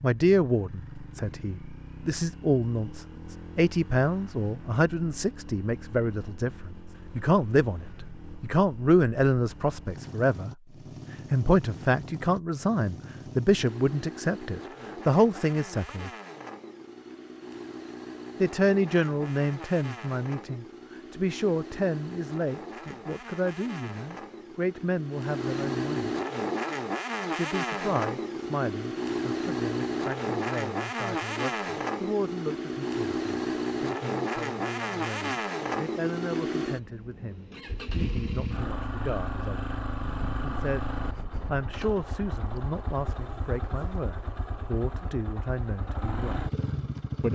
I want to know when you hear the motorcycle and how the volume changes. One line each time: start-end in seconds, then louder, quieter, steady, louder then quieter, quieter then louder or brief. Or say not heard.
0.0-47.2 louder then quieter.